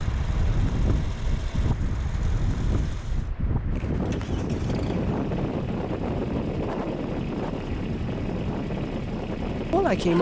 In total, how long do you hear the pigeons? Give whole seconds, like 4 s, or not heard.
not heard.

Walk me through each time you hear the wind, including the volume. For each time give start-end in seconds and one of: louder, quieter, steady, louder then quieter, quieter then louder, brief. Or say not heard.
0.0-10.1 steady.